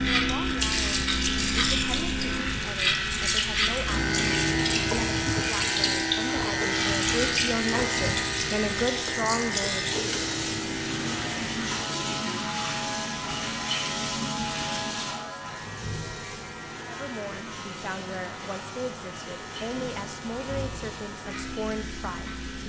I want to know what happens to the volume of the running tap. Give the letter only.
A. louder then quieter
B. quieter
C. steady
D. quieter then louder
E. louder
B.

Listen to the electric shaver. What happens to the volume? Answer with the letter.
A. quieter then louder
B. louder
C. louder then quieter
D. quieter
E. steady
D.